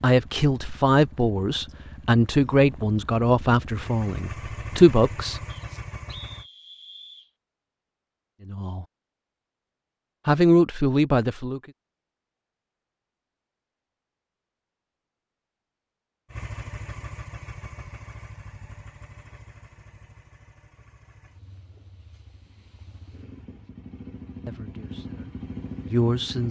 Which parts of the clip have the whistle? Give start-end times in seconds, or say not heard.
5.5-7.3.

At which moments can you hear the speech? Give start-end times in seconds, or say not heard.
0.0-5.4, 8.4-8.8, 10.2-11.6, 24.4-26.4.